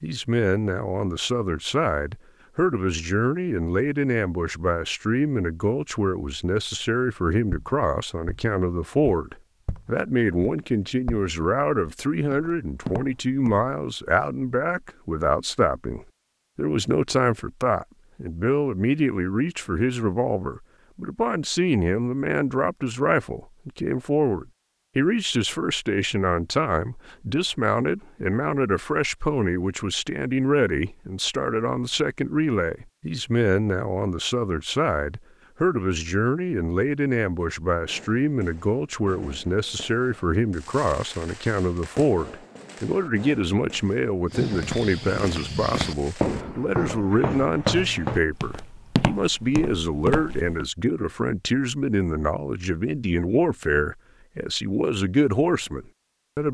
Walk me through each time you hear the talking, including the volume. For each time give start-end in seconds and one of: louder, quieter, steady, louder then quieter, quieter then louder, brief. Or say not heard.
0.0-56.4 steady.